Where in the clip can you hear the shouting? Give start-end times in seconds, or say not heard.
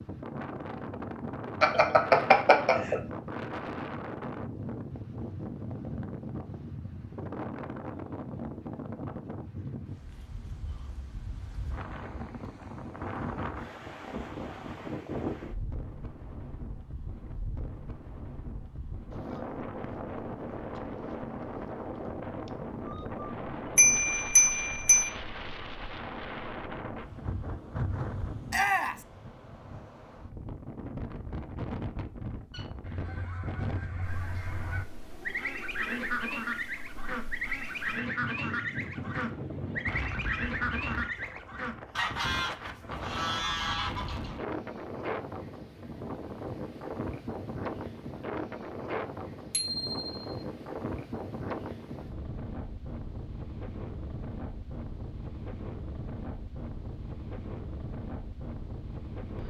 28.5-29.1.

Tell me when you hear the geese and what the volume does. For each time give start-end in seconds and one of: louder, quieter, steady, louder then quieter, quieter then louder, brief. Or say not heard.
32.5-44.4 louder.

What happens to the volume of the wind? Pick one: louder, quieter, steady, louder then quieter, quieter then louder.
steady.